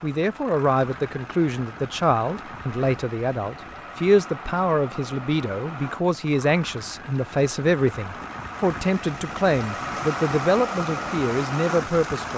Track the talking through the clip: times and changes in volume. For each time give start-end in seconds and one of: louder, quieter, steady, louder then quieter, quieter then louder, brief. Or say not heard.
0.0-12.3 steady.